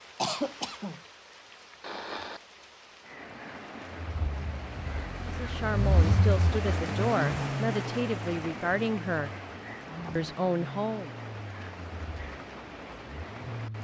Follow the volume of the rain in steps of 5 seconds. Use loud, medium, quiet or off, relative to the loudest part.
medium, loud, medium.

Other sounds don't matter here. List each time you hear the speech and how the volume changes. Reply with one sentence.
The speech can be heard from 5.2 to 9.3 s, at a steady volume; and briefly from 10.2 to 11.2 s.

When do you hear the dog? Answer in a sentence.
You can't hear the dog here.